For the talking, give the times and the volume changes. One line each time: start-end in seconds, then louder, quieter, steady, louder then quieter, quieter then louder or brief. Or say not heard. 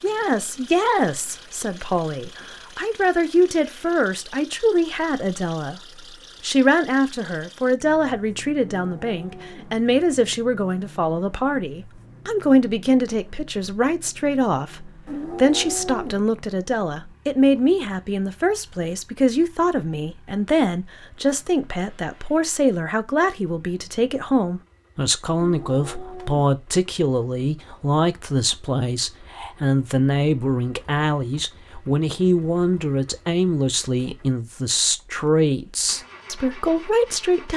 0.0-37.5 steady.